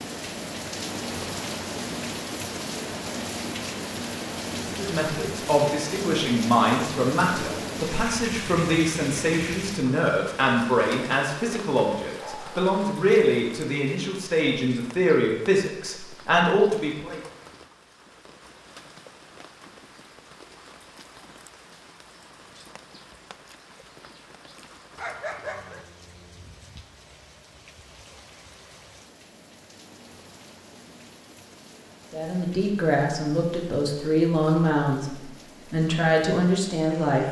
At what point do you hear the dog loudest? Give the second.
25 s.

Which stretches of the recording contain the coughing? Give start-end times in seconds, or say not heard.
not heard.